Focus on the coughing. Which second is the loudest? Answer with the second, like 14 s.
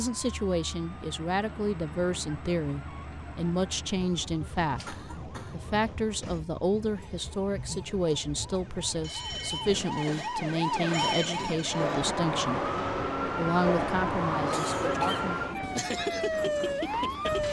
15 s.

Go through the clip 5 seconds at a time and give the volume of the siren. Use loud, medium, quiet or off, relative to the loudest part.
quiet, quiet, loud, loud.